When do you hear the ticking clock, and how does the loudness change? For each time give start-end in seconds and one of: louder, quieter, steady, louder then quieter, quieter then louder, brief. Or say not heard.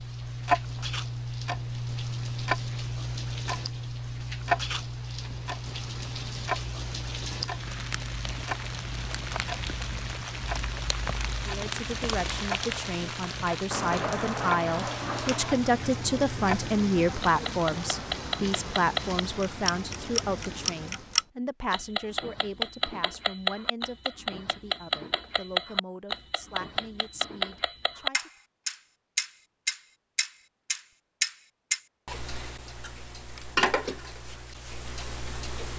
0.0-35.7 quieter then louder.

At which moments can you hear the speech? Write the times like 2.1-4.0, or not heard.
11.4-28.3.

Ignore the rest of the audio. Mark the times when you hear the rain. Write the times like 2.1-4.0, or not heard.
0.0-21.2.